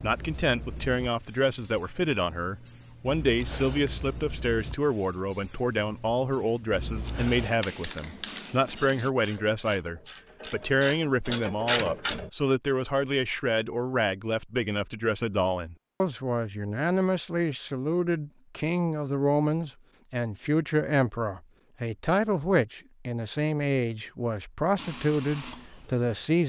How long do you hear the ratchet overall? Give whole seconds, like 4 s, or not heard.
5 s.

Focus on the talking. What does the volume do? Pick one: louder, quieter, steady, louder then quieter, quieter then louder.
steady.